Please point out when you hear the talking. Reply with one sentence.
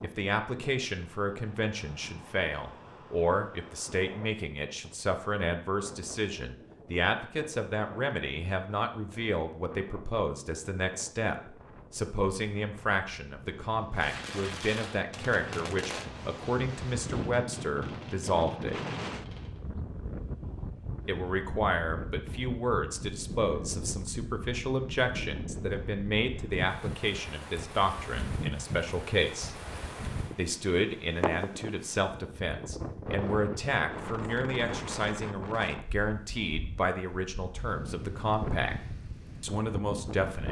The talking can be heard from 0.0 to 18.8 s, from 21.1 to 29.6 s, from 30.4 to 38.8 s and from 39.4 to 40.4 s.